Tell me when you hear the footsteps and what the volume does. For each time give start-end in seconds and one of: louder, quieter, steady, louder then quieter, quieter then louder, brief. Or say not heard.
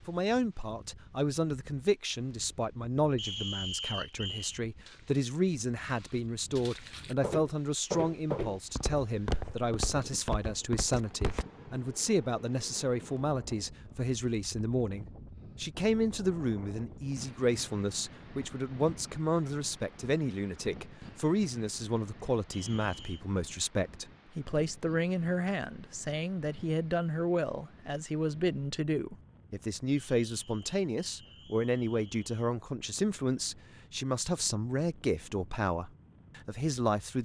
4.8-11.4 louder then quieter.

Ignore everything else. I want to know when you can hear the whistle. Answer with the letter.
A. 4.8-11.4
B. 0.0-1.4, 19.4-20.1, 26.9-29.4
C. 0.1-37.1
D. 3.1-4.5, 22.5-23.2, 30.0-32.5
D.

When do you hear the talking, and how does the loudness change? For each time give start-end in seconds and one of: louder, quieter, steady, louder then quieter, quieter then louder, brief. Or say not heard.
0.1-37.1 steady.